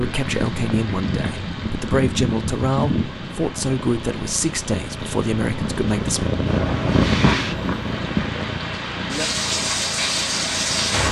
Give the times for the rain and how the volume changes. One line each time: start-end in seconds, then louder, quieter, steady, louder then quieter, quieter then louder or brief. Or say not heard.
0.0-11.0 quieter then louder.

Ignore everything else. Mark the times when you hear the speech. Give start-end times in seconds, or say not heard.
0.0-6.3.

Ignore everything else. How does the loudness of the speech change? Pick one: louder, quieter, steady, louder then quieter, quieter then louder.
steady.